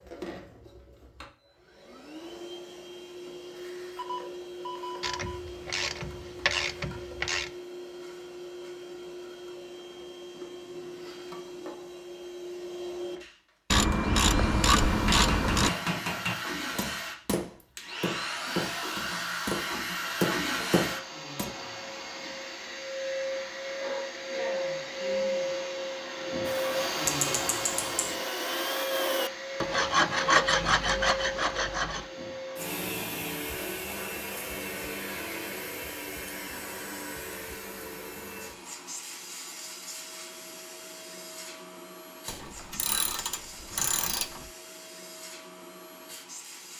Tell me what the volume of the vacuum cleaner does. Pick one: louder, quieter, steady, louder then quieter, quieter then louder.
louder then quieter.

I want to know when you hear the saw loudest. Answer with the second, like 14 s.
30 s.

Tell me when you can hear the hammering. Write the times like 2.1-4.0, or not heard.
14.8-21.5.